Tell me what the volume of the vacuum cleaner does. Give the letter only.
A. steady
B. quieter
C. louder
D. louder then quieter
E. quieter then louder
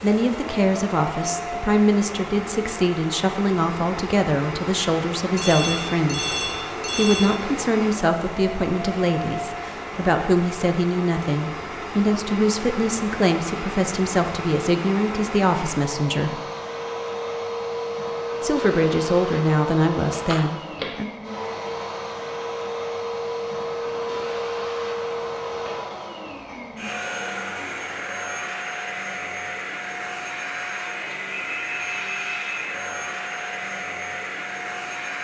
A.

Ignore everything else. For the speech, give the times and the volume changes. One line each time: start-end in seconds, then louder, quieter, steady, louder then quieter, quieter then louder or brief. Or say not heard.
0.0-6.3 steady
7.0-16.4 steady
18.4-21.1 brief.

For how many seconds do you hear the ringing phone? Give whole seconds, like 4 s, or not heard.
4 s.